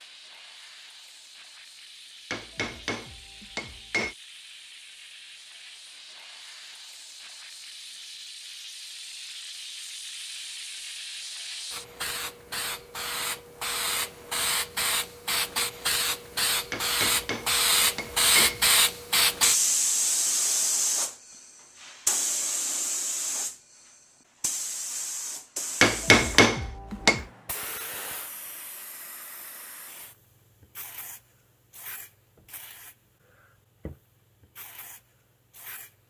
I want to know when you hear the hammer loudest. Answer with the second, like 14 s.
26 s.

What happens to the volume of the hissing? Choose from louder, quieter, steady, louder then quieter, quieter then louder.
louder then quieter.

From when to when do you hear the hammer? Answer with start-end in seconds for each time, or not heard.
2.3-4.2, 16.7-18.7, 25.8-27.2.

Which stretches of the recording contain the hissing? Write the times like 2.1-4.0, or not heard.
0.0-36.0.